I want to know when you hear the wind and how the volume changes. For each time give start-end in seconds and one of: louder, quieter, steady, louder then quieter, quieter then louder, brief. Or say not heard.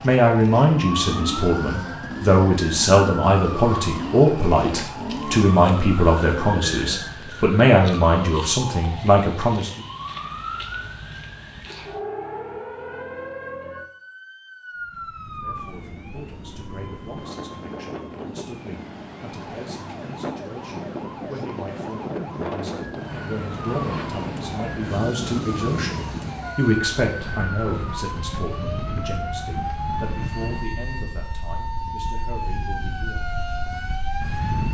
14.8-34.6 louder then quieter.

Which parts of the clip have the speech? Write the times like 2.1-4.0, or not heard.
0.0-9.8, 15.4-33.4.